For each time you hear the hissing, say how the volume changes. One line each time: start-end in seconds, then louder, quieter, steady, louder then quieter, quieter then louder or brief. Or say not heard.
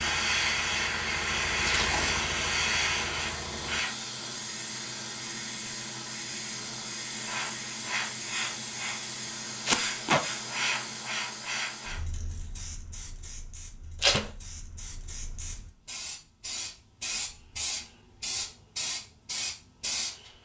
0.0-20.3 quieter then louder.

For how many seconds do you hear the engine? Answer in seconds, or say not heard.
4 s.